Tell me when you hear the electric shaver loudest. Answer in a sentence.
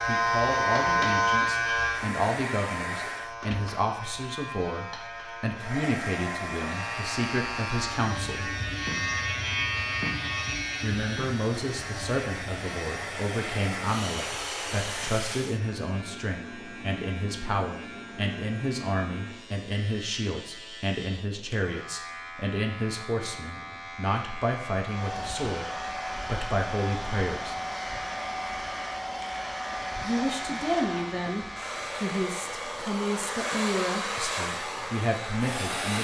The loudest moment of the electric shaver is at 1 second.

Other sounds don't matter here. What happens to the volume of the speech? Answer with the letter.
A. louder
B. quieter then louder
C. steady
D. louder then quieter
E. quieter
C.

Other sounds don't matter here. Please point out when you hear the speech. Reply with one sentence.
You can hear the speech from 0.0 to 8.6 s, from 10.8 to 27.6 s and from 30.0 to 35.9 s.